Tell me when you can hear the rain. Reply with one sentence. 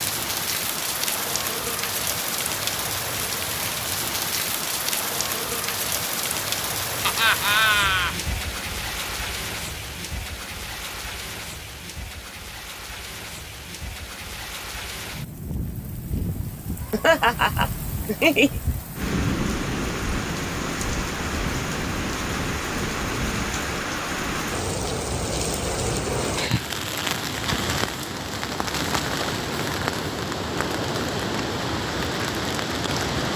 The rain can be heard from 0.0 to 33.3 s.